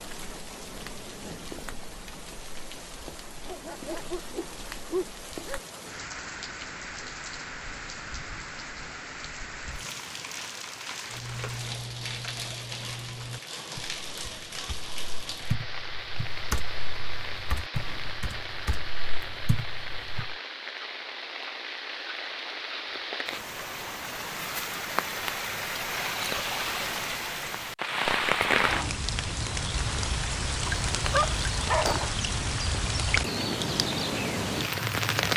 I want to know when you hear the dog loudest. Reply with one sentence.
The volume of the dog peaks at 32 seconds.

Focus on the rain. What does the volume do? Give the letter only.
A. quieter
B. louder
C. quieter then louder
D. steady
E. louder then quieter
B.